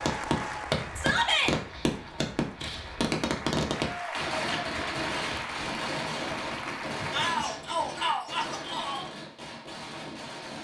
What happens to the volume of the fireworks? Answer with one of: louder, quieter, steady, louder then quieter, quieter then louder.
quieter.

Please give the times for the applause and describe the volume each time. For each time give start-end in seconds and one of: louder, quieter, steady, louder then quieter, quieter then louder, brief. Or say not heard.
0.0-7.3 quieter then louder.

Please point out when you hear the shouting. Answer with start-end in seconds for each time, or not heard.
0.9-1.6, 7.1-9.1.